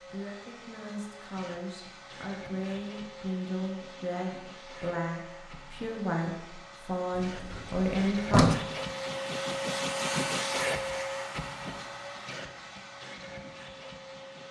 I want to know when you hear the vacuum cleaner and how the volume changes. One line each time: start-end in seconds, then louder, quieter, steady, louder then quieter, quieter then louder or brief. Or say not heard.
0.0-14.4 louder then quieter.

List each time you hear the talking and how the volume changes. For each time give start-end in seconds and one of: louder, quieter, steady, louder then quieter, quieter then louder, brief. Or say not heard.
0.0-8.4 louder.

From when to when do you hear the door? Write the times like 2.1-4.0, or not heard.
7.2-8.6.